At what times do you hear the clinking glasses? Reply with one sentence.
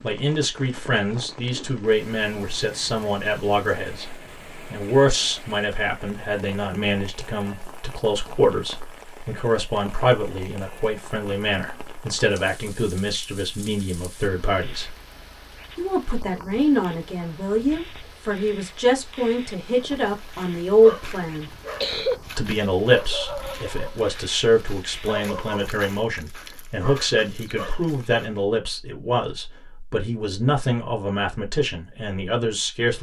The clinking glasses can't be heard in this clip.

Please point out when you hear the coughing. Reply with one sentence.
The coughing can be heard from 21.0 to 22.1 s.